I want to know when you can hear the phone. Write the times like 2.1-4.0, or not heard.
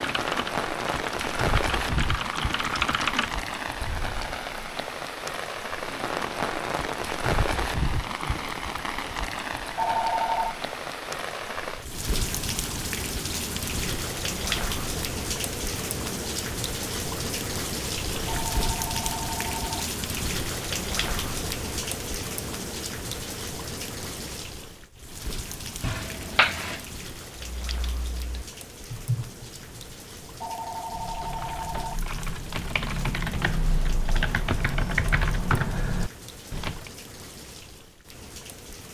9.8-10.6, 18.2-19.9, 30.4-32.0.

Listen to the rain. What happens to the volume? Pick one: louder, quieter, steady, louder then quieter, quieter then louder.
quieter.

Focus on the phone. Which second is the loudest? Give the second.
10 s.